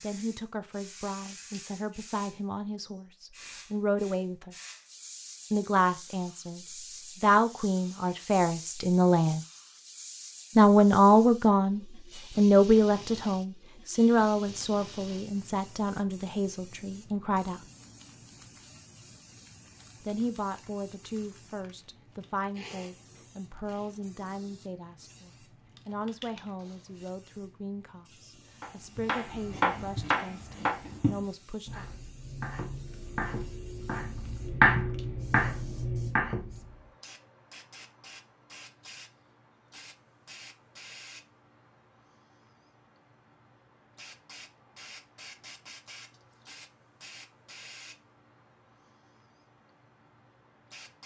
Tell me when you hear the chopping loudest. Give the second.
35 s.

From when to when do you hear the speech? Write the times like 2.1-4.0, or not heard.
0.0-4.5, 5.5-6.6, 7.2-9.4, 10.6-17.6, 20.1-31.9.